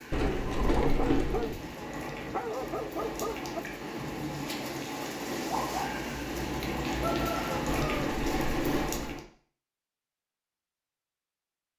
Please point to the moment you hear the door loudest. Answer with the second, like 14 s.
1 s.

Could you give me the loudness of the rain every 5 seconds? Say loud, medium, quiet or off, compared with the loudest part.
medium, loud, off.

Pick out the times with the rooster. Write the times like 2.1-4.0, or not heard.
6.9-8.2.